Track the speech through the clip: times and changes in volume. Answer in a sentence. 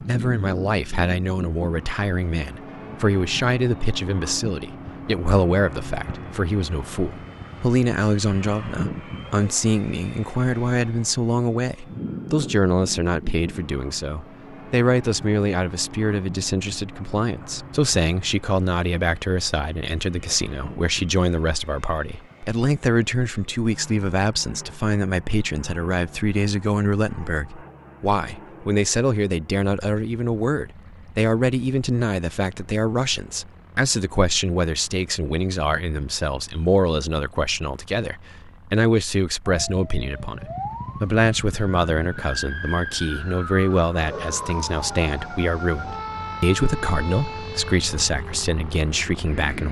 The speech can be heard from 0.0 to 49.6 s, at a steady volume.